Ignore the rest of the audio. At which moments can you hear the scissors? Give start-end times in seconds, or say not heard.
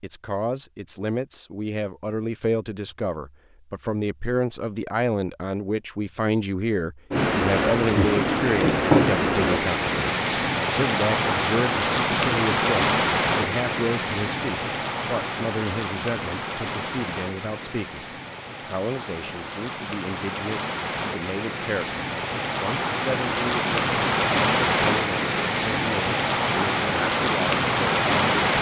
not heard.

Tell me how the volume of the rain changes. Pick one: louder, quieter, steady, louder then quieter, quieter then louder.
quieter then louder.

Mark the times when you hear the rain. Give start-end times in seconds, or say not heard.
7.1-28.5.